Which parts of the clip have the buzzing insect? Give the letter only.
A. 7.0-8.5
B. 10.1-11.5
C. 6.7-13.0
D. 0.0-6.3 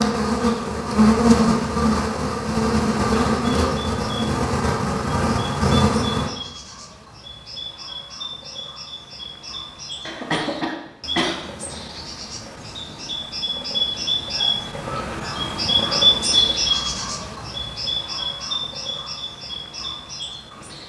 D.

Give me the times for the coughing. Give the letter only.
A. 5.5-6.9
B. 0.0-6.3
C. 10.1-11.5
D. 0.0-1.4
C.